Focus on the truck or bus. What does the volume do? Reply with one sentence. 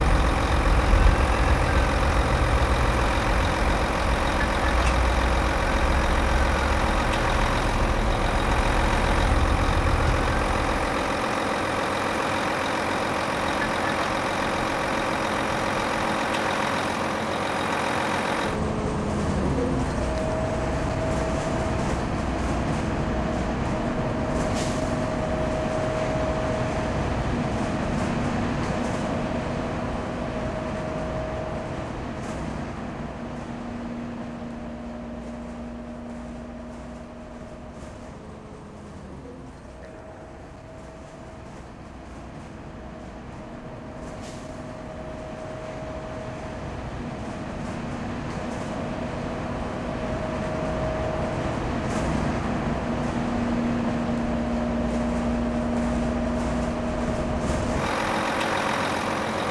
The loudness of the truck or bus goes down, then up.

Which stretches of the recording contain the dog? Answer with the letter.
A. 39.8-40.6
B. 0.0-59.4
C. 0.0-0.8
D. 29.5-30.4
A.